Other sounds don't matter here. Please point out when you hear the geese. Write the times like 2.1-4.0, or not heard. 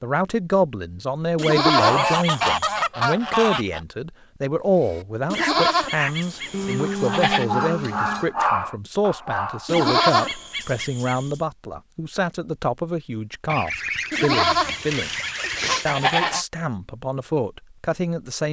1.8-3.8, 6.5-8.3, 13.4-16.4.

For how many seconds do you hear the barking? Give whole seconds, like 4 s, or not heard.
5 s.